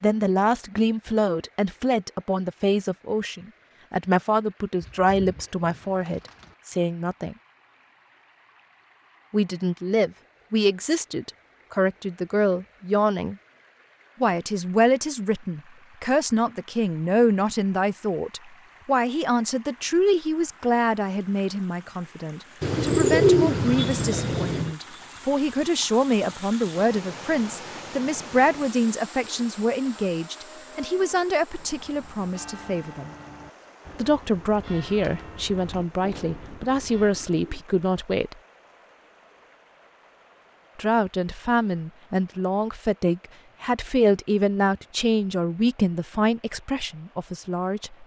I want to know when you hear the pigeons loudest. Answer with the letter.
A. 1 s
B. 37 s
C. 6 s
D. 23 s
D.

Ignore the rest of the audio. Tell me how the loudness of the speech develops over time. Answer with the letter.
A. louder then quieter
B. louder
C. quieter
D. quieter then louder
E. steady
E.